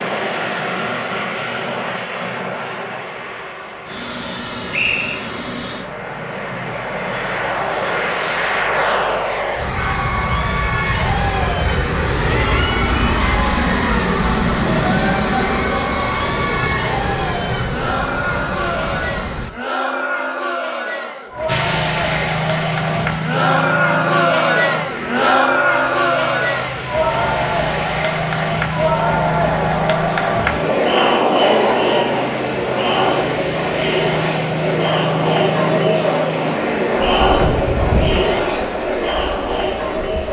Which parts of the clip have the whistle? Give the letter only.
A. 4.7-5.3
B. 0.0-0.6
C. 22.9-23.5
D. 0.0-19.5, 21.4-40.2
A.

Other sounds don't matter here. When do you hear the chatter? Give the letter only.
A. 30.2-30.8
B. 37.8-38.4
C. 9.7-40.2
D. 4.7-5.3
C.